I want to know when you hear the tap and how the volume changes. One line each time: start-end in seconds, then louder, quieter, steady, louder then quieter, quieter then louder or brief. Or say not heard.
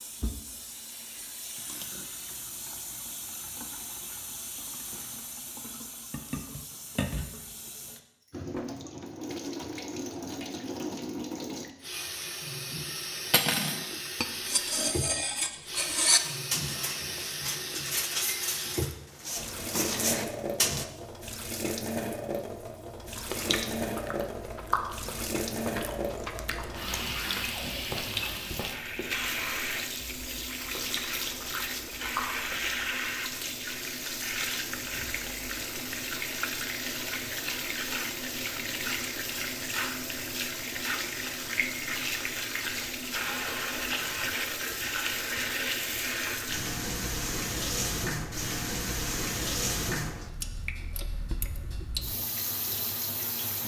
0.0-53.6 louder.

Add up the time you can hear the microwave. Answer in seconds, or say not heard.
not heard.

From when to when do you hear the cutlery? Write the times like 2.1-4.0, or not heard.
13.3-20.9.